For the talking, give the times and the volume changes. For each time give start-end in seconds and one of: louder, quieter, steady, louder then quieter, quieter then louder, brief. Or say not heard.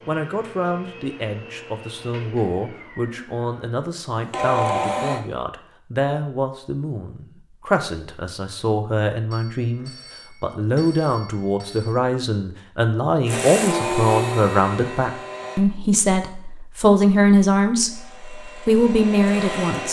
0.1-19.8 louder.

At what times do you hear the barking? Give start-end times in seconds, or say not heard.
not heard.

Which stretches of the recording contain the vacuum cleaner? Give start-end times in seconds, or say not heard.
0.0-5.2, 13.2-15.7, 17.9-19.8.